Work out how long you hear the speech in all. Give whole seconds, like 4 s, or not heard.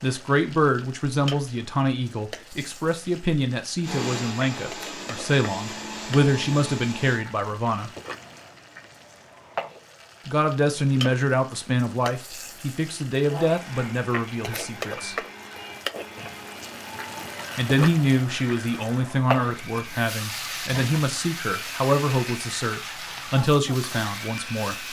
20 s.